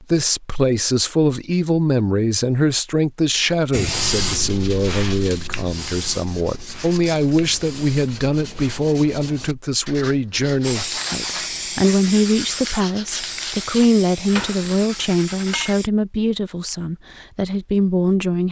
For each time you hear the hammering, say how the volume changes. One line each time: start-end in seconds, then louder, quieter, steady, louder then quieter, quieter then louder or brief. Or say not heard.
not heard.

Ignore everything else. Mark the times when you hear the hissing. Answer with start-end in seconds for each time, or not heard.
3.7-8.8, 10.6-15.9.